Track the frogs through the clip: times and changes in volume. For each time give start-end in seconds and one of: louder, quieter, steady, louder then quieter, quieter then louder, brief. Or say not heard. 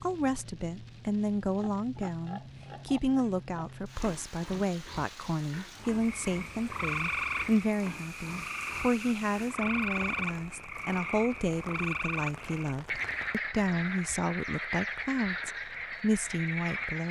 6.0-17.0 steady.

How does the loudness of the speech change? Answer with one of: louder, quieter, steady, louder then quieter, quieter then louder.
steady.